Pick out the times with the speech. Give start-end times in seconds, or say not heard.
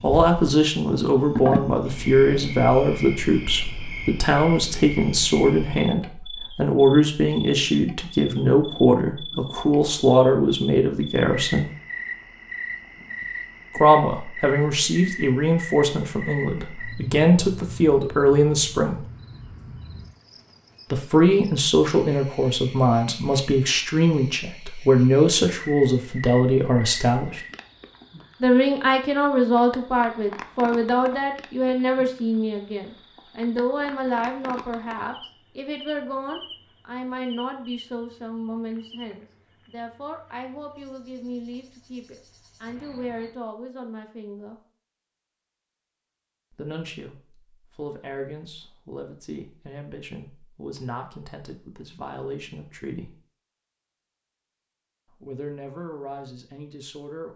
0.0-11.7, 13.8-19.1, 20.9-27.4, 28.4-44.5, 46.5-53.1, 55.2-57.3.